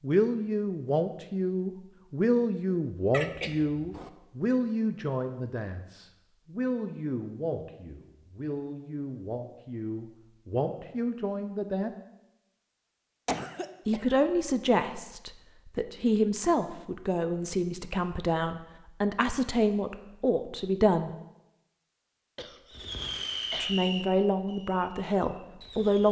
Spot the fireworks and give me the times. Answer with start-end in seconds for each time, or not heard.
22.7-26.0.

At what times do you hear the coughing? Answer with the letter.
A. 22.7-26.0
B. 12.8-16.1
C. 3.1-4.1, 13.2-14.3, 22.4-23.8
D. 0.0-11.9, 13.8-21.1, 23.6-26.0
C.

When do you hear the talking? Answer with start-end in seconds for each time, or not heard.
0.0-11.9, 13.8-21.1, 23.6-26.0.